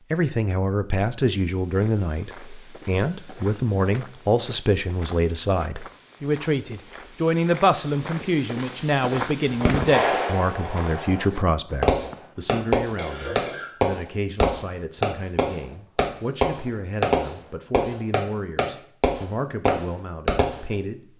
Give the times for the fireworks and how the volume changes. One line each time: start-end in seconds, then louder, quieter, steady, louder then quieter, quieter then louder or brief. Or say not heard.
9.6-20.6 steady.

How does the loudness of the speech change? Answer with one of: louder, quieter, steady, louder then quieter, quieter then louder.
quieter.